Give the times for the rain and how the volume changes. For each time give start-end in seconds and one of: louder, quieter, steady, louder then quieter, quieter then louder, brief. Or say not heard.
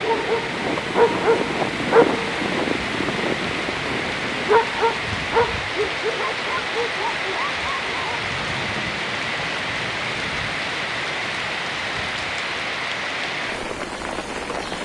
0.0-14.8 steady.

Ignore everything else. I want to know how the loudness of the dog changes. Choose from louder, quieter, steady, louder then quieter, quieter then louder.
quieter.